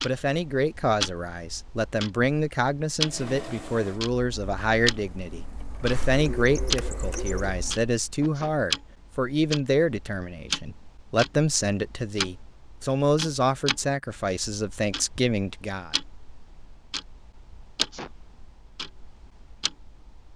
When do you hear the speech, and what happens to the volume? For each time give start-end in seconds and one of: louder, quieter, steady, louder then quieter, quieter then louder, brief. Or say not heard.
0.0-15.9 steady.